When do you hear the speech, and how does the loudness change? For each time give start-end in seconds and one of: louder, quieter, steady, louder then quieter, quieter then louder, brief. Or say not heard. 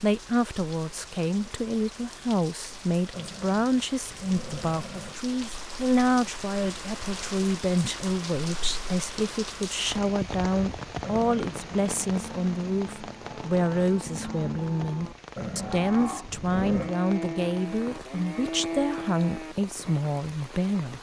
0.0-20.9 steady.